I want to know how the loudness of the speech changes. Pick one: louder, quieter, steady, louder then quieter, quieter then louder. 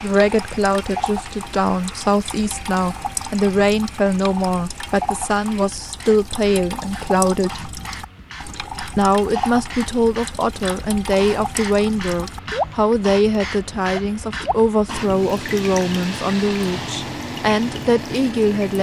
steady.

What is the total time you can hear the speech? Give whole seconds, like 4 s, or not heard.
17 s.